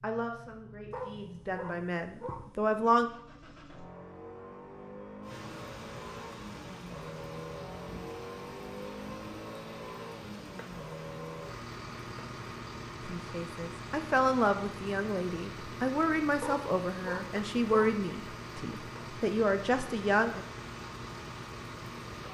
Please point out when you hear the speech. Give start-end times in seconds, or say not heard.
0.0-3.1, 13.1-20.4.